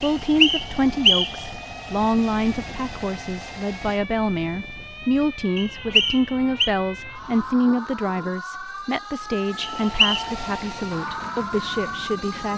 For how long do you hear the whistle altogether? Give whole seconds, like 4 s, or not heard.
3 s.